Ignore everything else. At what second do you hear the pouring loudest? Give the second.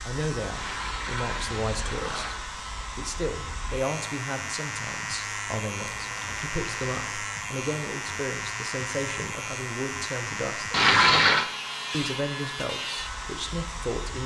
11 s.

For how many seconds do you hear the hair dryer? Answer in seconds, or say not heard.
14 s.